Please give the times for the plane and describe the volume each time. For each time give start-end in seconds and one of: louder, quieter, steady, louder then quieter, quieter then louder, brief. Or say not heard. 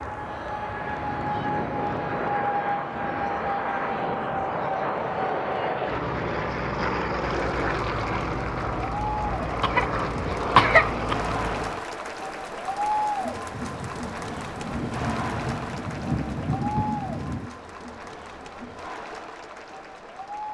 0.0-11.8 steady.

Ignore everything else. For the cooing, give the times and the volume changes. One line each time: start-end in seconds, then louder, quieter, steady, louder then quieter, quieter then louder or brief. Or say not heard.
not heard.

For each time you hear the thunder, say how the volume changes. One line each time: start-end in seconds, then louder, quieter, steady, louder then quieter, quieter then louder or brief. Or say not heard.
13.5-17.5 louder.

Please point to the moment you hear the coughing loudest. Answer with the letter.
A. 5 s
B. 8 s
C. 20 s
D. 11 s
D.